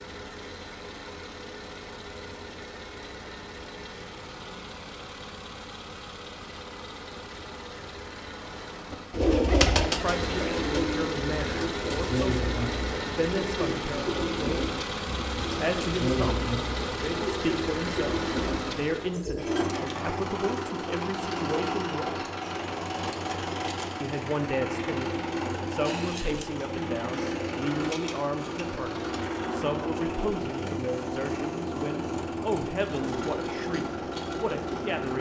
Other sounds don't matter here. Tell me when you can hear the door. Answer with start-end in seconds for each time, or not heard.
not heard.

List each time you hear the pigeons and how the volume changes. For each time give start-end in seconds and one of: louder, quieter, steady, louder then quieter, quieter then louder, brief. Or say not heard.
8.9-19.9 quieter.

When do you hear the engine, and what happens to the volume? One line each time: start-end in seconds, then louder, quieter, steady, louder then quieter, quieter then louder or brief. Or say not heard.
0.0-35.1 louder.